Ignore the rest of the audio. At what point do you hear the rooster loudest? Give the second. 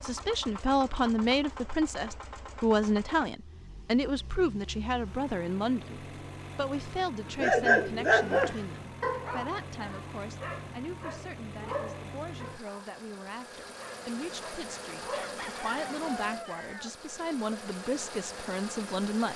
16 s.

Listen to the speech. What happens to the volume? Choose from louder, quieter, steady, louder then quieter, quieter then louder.
quieter then louder.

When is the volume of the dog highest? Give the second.
8 s.